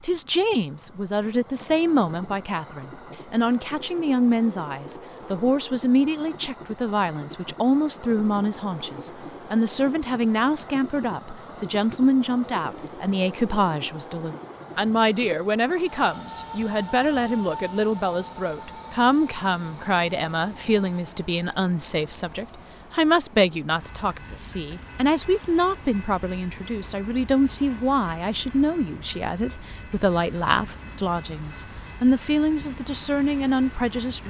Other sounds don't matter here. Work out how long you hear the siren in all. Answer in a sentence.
You can't hear the siren here.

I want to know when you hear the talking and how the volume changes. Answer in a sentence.
You can hear the talking from 0.0 to 34.2 s, at a steady volume.